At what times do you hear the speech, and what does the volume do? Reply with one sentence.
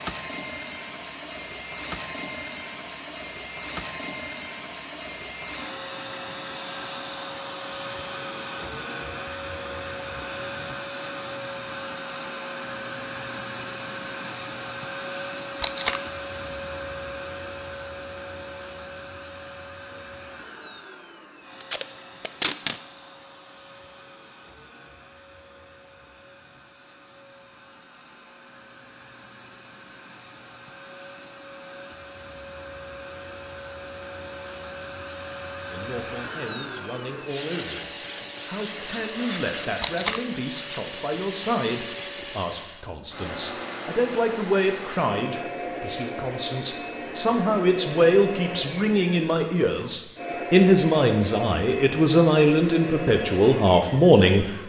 You can hear the speech from 35.6 to 54.5 s, getting louder.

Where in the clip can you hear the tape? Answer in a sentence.
The tape can be heard from 15.6 to 16.0 s, from 21.6 to 22.8 s and from 39.8 to 40.2 s.